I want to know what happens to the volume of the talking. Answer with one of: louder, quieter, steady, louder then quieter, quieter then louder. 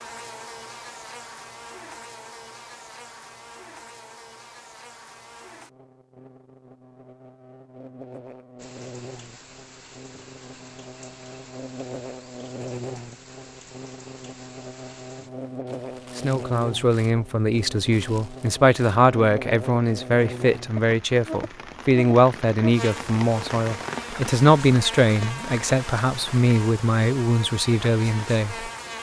steady.